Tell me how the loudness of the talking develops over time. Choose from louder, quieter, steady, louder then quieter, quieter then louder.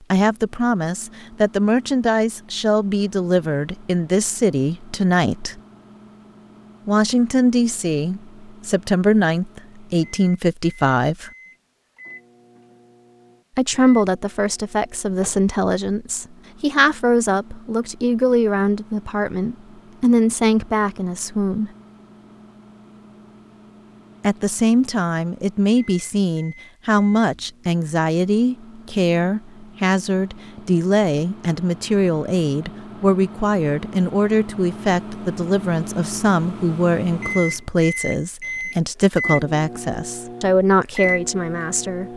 steady.